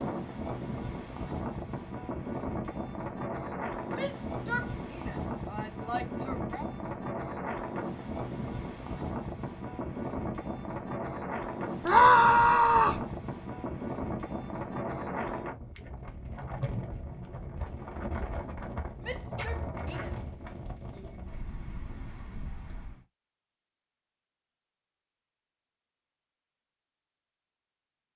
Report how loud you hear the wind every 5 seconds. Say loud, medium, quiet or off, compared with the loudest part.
loud, loud, loud, loud, medium, off.